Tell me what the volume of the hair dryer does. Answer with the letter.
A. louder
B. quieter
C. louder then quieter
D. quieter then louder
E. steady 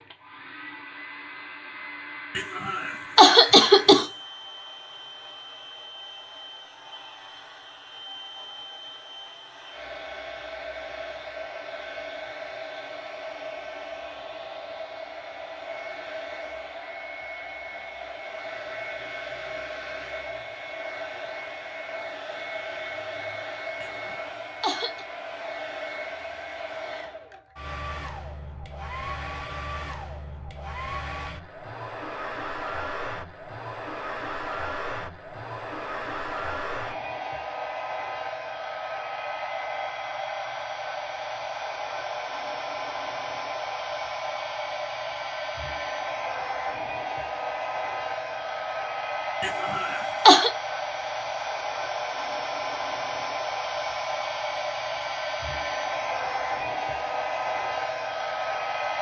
A.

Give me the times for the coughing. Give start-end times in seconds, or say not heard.
2.4-4.0, 23.8-25.1, 49.4-50.5.